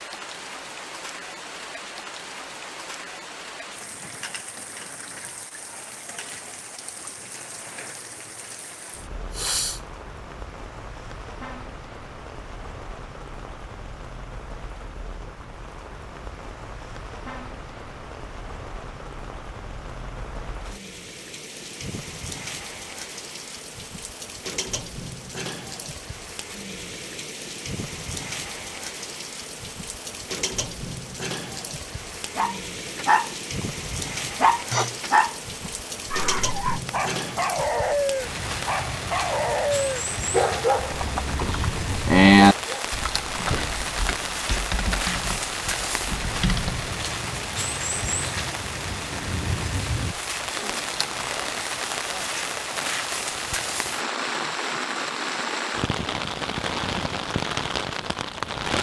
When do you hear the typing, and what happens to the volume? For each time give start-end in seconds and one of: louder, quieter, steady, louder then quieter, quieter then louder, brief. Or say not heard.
40.8-46.9 louder then quieter.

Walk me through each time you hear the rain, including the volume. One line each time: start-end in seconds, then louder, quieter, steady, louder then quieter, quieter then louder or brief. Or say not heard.
0.0-58.7 louder.